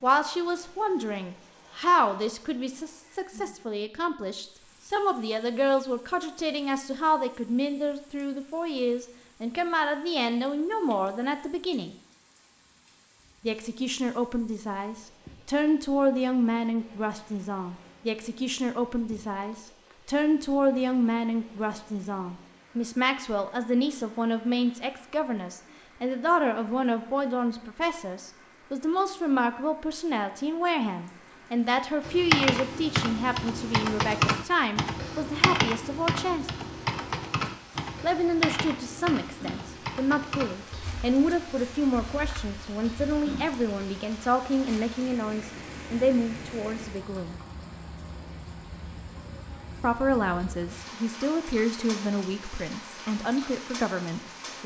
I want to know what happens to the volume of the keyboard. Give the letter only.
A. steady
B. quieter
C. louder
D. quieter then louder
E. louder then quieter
B.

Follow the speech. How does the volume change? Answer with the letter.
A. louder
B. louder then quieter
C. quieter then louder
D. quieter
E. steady
E.